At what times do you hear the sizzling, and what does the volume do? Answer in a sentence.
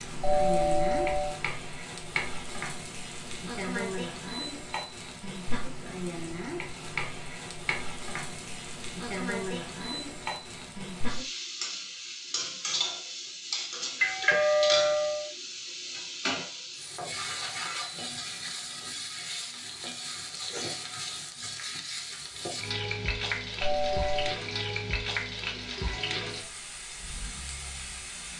You can hear the sizzling from 0.0 to 28.3 s, at a steady volume.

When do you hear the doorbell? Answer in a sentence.
The doorbell can be heard from 0.2 to 1.4 s, from 14.0 to 15.2 s and from 23.6 to 24.4 s.